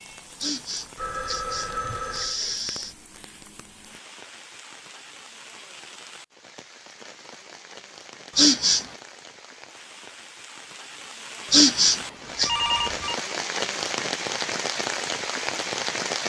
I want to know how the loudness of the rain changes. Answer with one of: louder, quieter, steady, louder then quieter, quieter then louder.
louder.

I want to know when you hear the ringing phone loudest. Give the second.
13 s.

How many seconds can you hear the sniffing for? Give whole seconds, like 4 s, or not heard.
4 s.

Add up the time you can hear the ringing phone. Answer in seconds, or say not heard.
2 s.